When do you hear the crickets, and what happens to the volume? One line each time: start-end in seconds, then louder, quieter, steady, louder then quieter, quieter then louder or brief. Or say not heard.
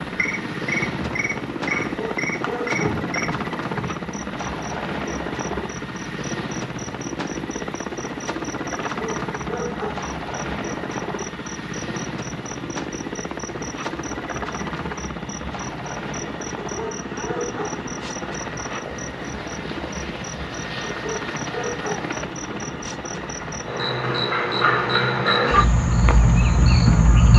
0.0-27.3 quieter then louder.